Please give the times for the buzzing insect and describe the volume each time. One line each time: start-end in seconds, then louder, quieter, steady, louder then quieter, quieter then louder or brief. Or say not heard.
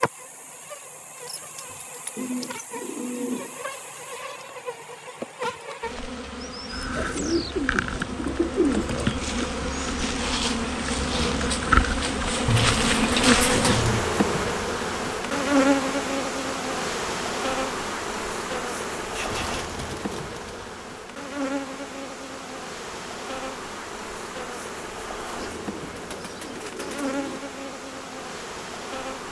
0.0-29.2 louder then quieter.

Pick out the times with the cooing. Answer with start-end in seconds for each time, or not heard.
1.7-3.7, 7.0-9.5, 12.4-14.2, 19.1-20.7, 25.4-27.4.